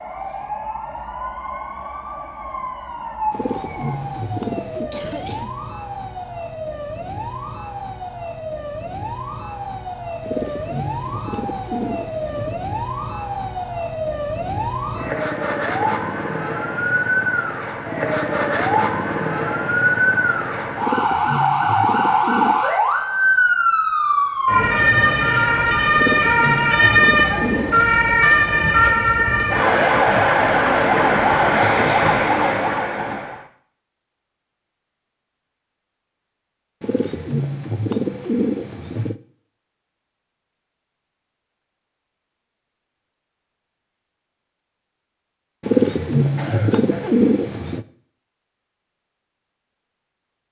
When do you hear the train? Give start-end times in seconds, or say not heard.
not heard.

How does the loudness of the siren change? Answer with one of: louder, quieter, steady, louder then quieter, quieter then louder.
louder.